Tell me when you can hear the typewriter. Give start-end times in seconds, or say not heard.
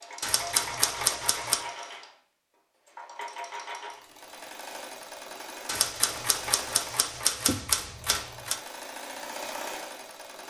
0.2-1.6, 5.7-8.6.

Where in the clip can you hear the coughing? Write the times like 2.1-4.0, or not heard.
7.5-8.2.